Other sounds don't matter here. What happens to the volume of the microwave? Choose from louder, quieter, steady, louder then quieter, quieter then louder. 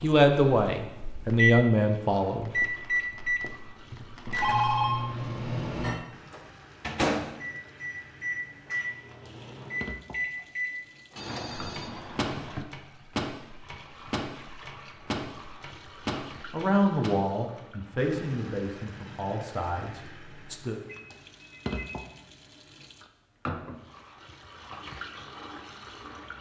quieter.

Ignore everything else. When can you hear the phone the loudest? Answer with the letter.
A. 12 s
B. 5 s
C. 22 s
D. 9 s
B.